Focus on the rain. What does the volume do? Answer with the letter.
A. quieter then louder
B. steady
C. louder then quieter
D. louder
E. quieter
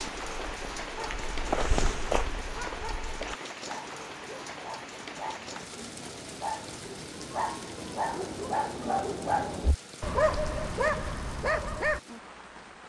E.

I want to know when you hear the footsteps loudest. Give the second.
2 s.